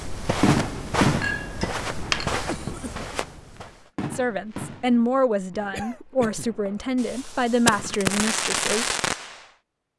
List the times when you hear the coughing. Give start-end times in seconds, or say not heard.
2.3-3.1, 5.7-6.5.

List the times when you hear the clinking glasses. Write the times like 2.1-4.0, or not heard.
1.2-2.5.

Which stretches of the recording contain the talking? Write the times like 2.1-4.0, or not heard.
4.1-8.9.